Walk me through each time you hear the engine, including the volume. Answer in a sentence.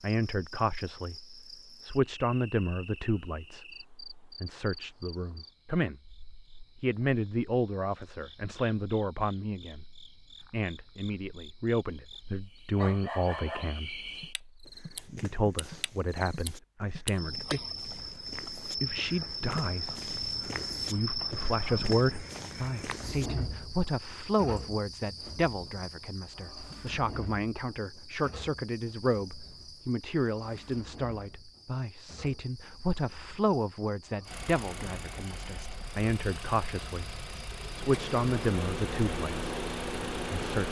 The engine can be heard from 34.2 to 40.6 s, getting louder.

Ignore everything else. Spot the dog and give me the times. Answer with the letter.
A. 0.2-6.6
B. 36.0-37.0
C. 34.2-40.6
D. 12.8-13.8
D.